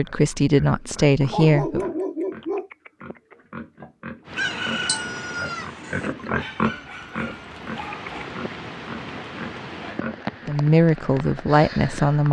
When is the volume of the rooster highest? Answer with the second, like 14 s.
5 s.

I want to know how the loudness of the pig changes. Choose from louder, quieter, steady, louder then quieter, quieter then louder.
louder then quieter.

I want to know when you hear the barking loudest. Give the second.
2 s.